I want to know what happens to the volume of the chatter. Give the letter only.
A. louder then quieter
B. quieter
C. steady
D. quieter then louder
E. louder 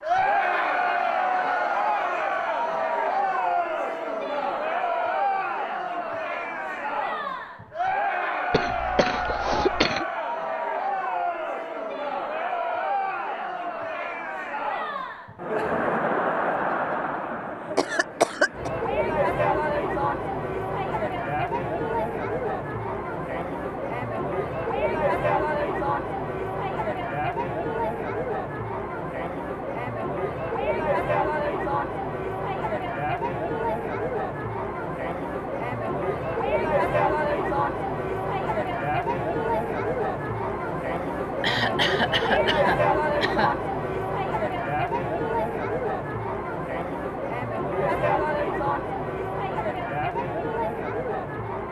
C.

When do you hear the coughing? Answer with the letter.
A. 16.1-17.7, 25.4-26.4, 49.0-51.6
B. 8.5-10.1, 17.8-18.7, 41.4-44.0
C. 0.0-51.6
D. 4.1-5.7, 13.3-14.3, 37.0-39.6
B.